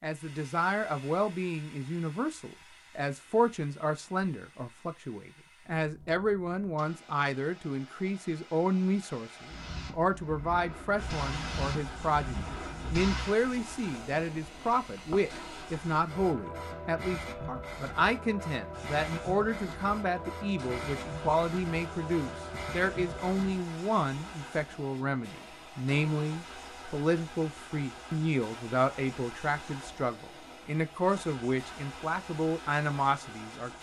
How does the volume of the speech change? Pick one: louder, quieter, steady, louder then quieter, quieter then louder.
steady.